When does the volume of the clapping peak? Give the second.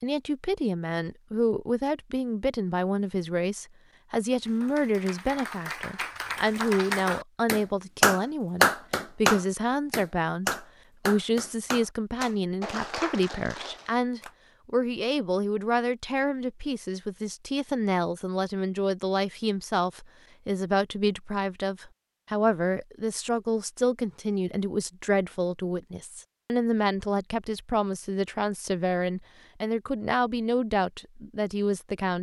9 s.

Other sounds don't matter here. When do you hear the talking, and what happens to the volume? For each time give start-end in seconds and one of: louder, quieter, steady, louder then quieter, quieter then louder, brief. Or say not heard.
0.0-32.1 steady.